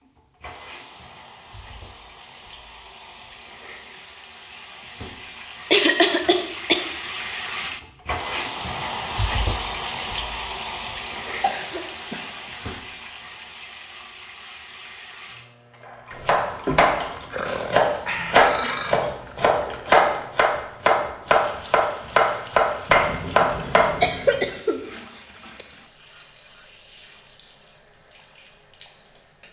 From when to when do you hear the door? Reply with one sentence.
You can't hear the door here.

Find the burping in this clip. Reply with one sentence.
The burping can be heard from 17.3 to 19.1 s.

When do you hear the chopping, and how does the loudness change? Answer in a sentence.
You can hear the chopping from 16.2 to 24.4 s, at a steady volume.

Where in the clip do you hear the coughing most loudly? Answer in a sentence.
The volume of the coughing peaks at 6 seconds.